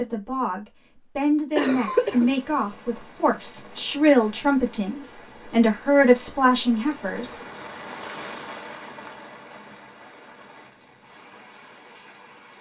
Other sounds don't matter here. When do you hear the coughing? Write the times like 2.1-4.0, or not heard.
1.6-2.3.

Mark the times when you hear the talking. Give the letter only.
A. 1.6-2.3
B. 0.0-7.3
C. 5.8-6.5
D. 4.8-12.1
B.